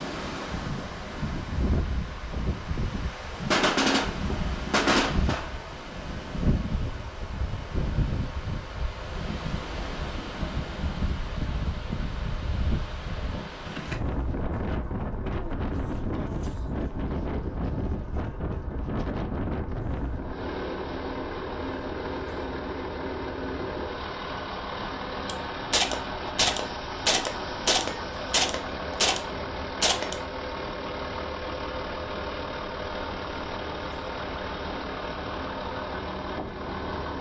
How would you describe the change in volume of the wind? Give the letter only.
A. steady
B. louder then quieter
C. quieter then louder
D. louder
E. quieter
E.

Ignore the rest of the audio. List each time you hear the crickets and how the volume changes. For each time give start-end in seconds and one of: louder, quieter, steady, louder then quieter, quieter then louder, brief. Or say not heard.
not heard.